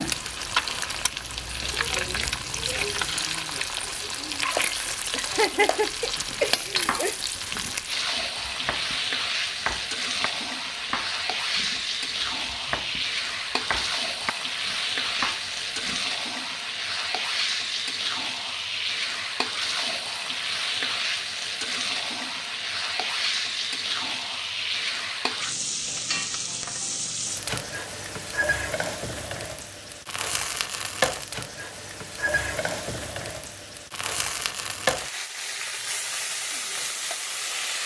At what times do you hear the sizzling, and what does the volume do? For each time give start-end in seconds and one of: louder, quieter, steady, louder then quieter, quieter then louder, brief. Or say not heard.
0.0-37.8 steady.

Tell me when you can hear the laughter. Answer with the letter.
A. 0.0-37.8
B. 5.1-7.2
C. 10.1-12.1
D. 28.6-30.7
B.